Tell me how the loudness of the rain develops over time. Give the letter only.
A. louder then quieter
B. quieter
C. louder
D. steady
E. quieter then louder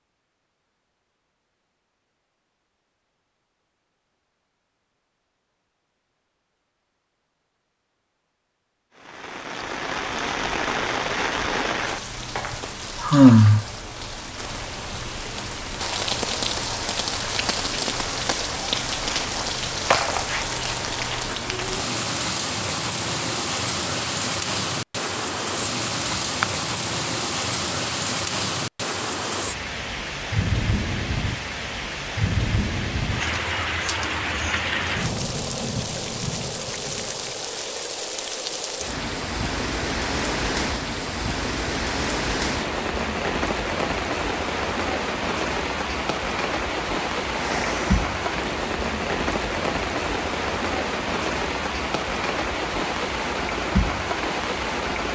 D.